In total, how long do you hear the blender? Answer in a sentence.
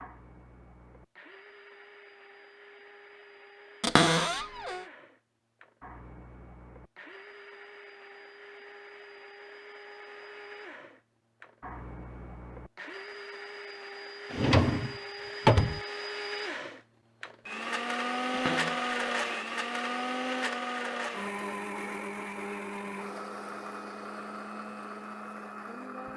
The blender can be heard for 26 seconds in total.